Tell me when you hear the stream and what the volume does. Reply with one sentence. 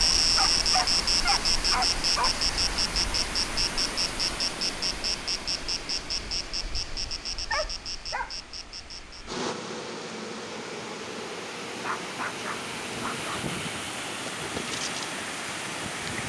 You can hear the stream from 0.0 to 16.2 s, getting quieter then louder.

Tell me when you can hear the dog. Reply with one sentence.
You can hear the dog from 0.2 to 2.4 s, from 7.5 to 8.3 s and from 11.8 to 13.4 s.